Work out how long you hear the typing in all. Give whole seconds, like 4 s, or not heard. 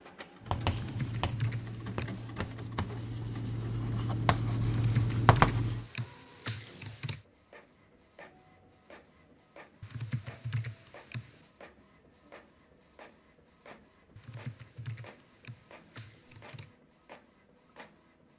8 s.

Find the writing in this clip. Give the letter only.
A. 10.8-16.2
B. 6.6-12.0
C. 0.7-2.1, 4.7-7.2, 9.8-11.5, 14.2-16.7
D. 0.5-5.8
D.